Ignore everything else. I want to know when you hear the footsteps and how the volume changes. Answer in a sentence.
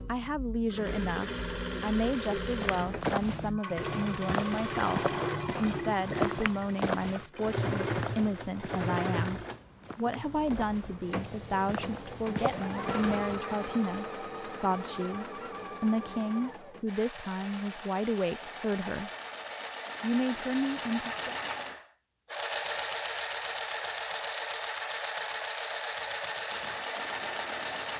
You can hear the footsteps from 2.6 to 13.4 s, getting quieter then louder.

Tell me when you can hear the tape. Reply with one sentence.
The tape can't be heard in this clip.